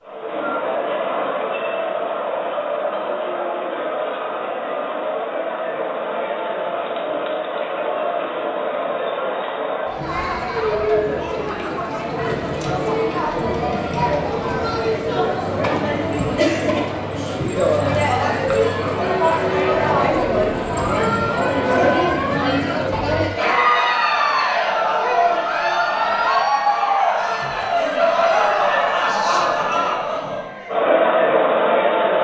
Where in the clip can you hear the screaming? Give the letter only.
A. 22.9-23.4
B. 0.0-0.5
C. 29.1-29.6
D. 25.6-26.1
C.